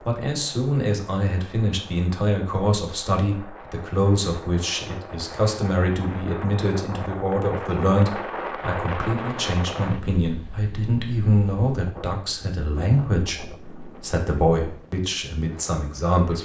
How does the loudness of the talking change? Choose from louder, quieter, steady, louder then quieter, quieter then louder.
steady.